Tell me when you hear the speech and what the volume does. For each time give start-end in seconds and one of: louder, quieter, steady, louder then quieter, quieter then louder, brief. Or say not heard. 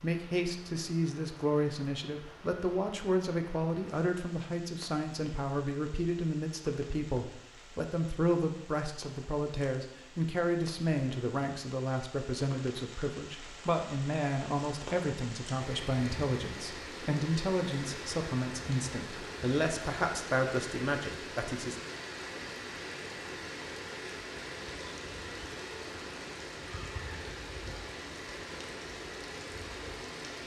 0.0-21.8 steady.